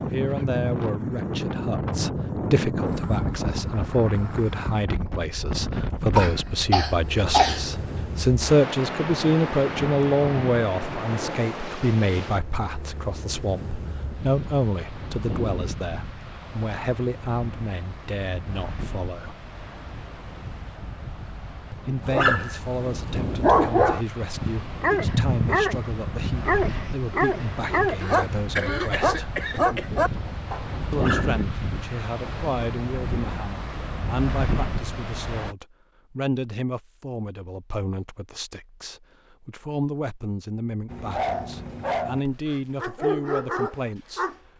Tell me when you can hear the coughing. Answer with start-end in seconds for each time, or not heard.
6.2-7.6, 28.0-30.0.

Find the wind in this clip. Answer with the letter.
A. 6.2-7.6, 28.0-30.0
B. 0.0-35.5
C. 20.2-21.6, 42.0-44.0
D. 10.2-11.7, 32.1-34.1
B.